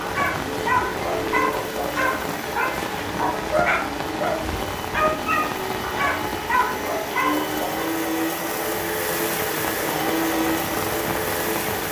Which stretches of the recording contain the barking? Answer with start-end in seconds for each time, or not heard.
0.0-7.8.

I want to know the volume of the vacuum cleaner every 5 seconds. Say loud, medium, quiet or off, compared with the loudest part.
medium, loud, loud.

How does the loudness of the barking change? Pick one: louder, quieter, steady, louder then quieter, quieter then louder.
steady.